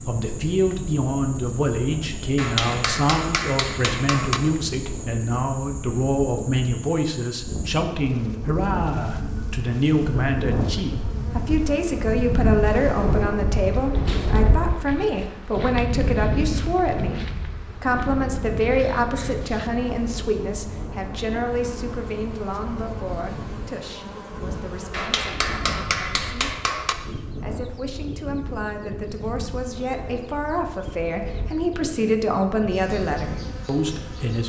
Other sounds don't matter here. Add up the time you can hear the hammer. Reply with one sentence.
The hammer can be heard for 4 seconds in total.